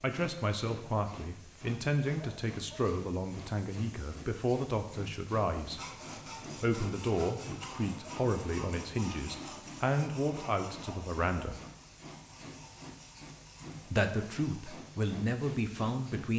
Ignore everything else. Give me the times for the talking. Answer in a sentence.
The talking can be heard from 0.0 to 5.8 s, from 6.6 to 11.6 s and from 13.9 to 16.3 s.